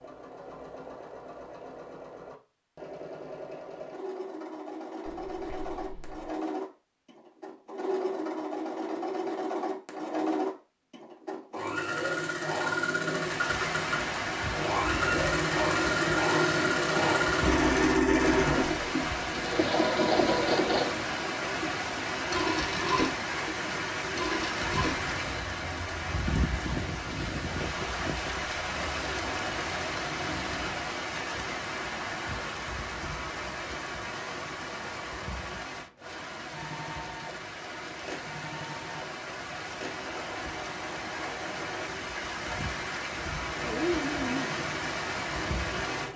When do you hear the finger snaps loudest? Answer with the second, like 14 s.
44 s.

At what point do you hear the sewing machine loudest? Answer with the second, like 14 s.
18 s.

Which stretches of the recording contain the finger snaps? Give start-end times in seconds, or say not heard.
5.0-6.3, 43.5-44.5.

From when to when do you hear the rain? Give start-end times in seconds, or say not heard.
13.1-46.1.